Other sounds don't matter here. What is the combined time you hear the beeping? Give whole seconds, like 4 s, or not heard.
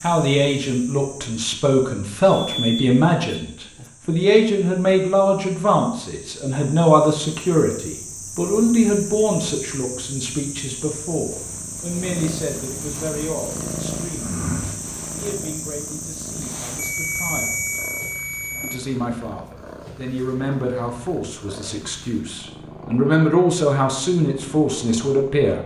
4 s.